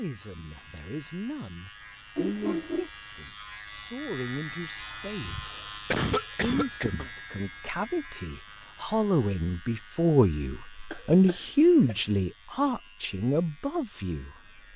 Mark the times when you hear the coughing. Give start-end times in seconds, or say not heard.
2.1-2.9, 5.2-7.1, 10.9-11.9.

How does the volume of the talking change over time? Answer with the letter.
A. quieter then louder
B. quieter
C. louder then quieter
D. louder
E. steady
C.